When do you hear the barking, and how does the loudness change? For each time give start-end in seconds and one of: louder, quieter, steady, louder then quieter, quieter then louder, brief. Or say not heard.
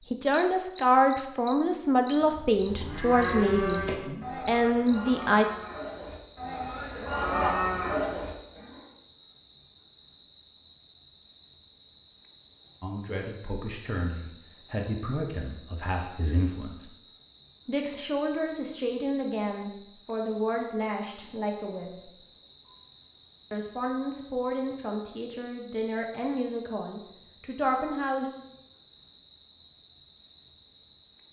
not heard.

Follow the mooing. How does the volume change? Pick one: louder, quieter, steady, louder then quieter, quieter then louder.
quieter then louder.